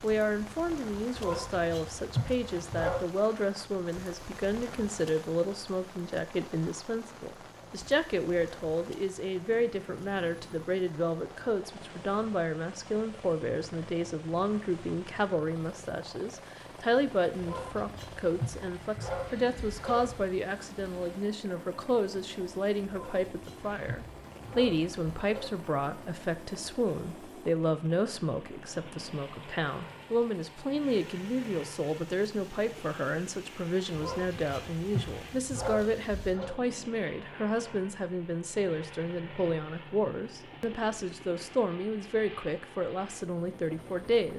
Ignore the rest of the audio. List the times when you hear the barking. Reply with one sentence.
The barking can be heard from 1.1 to 3.0 s, from 17.4 to 20.2 s, from 22.9 to 25.5 s and from 33.9 to 36.5 s.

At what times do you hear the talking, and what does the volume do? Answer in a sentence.
The talking can be heard from 0.0 to 44.3 s, at a steady volume.